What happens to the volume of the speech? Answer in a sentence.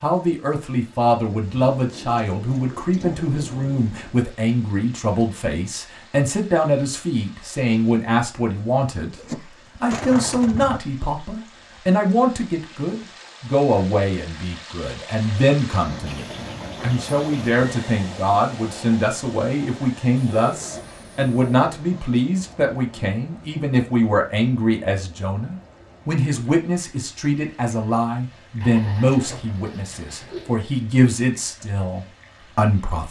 The volume of the speech stays about the same.